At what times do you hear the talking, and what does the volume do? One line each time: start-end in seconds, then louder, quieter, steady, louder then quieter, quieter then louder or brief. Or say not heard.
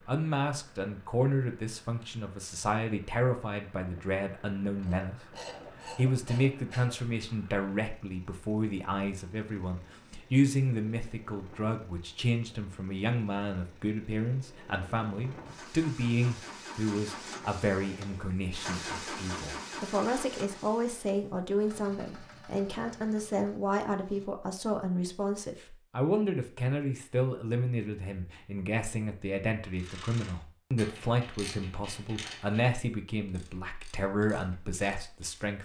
0.1-35.6 steady.